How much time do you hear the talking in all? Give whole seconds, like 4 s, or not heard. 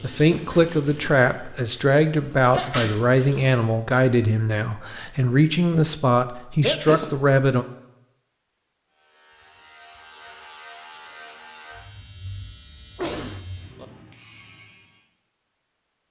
8 s.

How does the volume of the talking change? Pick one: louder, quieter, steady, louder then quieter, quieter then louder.
steady.